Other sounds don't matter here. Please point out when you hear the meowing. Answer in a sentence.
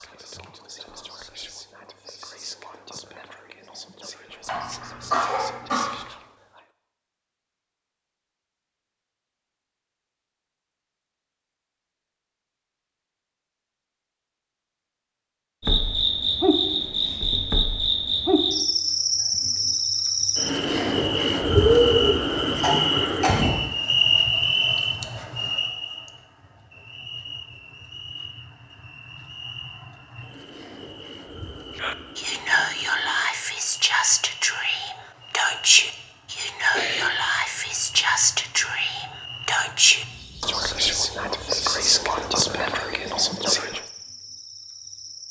The meowing can't be heard in this clip.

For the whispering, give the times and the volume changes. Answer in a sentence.
The whispering can be heard from 0.0 to 6.7 s, at a steady volume; and from 31.8 to 43.8 s, at a steady volume.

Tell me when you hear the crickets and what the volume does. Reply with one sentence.
The crickets can be heard from 15.6 to 45.2 s, getting quieter.